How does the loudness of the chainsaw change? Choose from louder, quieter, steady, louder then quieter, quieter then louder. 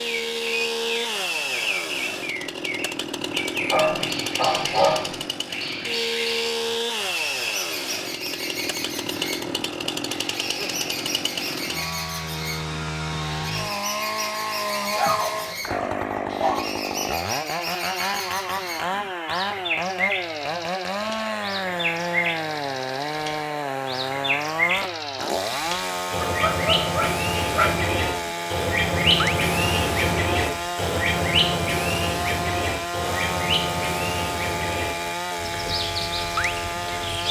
steady.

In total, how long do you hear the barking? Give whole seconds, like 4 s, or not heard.
5 s.